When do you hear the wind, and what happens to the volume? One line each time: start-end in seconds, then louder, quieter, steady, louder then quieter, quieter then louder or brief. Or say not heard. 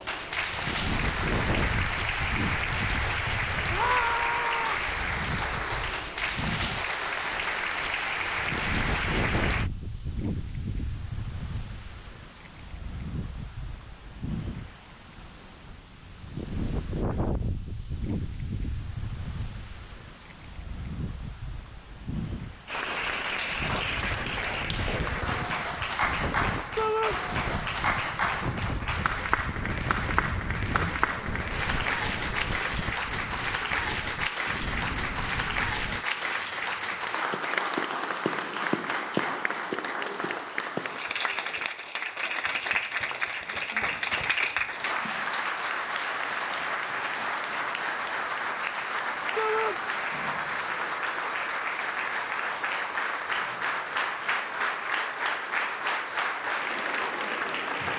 0.0-36.0 steady.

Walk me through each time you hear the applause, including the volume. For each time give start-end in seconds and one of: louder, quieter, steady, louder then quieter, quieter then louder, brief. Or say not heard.
0.0-9.7 steady
22.6-57.9 steady.